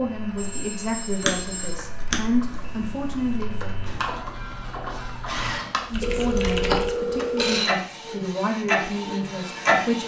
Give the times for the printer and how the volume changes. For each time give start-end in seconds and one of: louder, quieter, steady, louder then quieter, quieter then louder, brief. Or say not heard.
0.0-10.0 louder.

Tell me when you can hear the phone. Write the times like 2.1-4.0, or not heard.
0.3-1.8, 6.0-7.5.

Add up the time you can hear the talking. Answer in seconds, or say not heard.
8 s.